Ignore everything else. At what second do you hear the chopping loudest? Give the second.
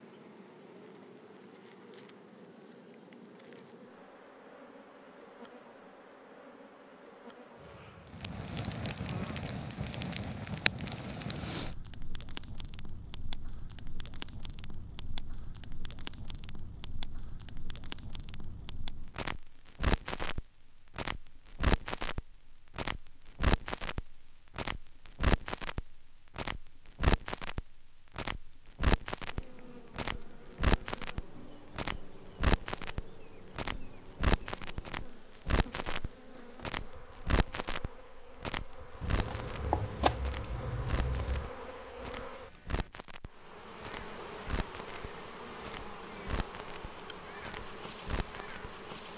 40 s.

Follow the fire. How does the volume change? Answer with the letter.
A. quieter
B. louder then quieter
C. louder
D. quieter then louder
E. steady
A.